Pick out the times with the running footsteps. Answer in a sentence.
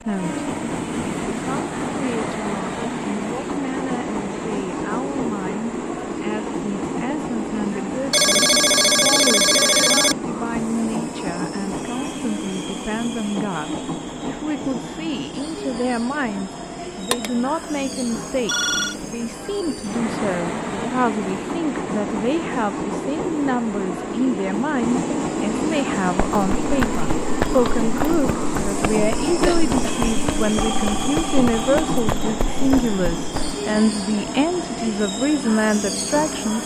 The running footsteps can be heard from 26.3 to 33.5 s.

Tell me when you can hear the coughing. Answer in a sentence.
The coughing can be heard from 29.4 to 30.1 s.